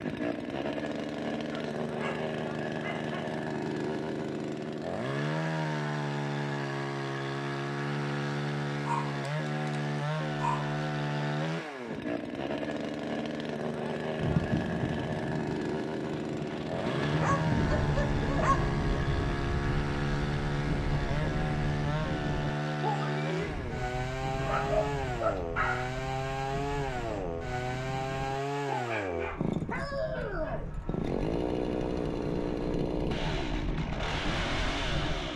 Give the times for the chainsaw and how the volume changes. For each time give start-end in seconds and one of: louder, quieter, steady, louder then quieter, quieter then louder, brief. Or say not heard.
0.0-35.3 steady.